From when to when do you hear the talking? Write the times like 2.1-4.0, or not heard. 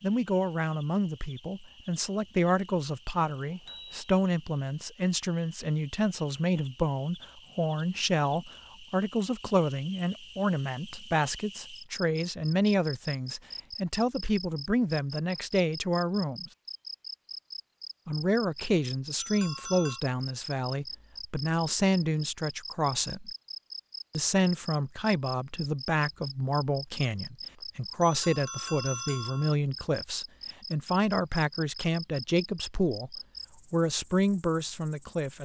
0.0-16.5, 18.1-23.3, 24.1-35.3.